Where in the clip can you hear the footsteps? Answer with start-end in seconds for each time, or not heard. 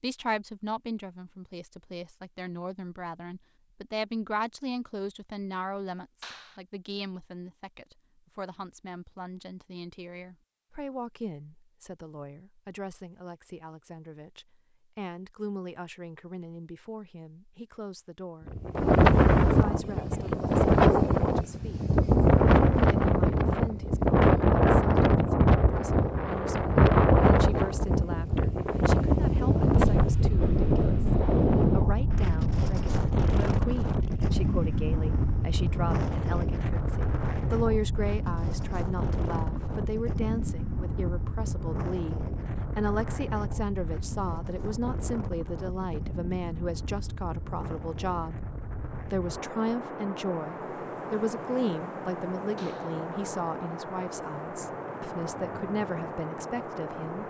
not heard.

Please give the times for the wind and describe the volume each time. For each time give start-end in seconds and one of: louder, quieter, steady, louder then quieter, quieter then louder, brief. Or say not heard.
18.4-57.2 quieter.